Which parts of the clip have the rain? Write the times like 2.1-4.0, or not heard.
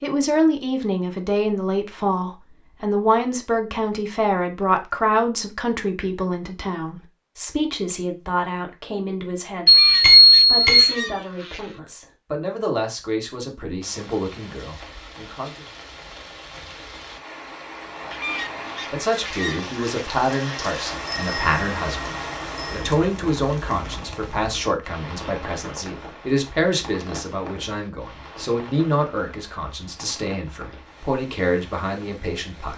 13.8-32.7.